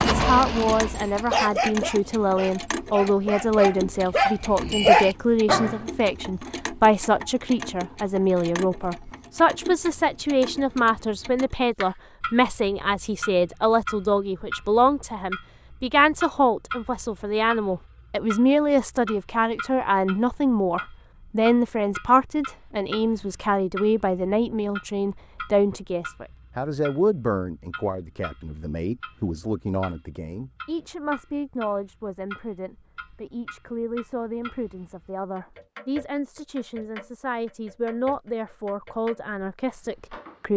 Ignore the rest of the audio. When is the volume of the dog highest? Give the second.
5 s.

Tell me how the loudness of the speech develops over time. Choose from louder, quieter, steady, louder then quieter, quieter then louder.
quieter.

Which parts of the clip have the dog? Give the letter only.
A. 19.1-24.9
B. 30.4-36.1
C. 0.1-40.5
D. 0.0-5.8
D.